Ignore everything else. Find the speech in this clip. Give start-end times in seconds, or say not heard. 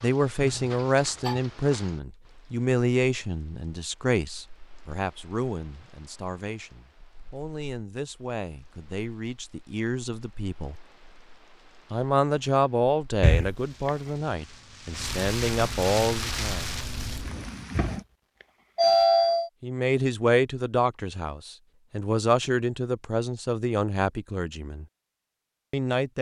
0.0-10.8, 11.9-16.7, 19.6-24.9, 25.7-26.1.